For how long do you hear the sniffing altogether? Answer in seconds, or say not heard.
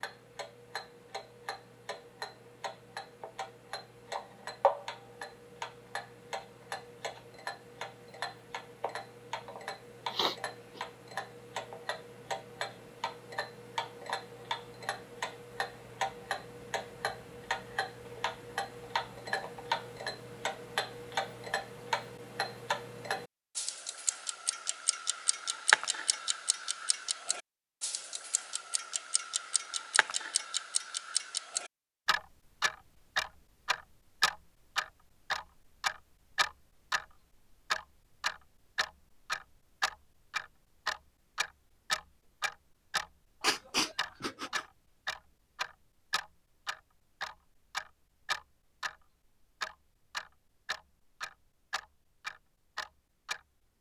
2 s.